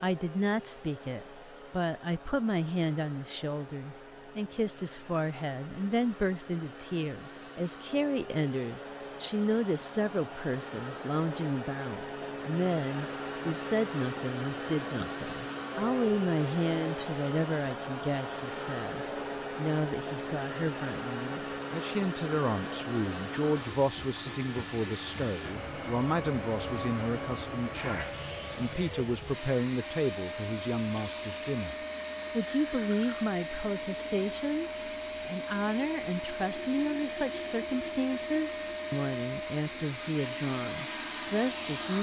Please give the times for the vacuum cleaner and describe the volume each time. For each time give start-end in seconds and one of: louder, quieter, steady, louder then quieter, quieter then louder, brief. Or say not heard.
0.0-41.9 louder.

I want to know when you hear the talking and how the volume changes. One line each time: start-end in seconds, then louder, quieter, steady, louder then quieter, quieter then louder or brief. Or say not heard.
0.0-41.9 steady.